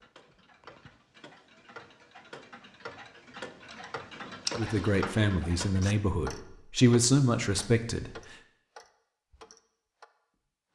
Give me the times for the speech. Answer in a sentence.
The speech can be heard from 4.5 to 8.1 s.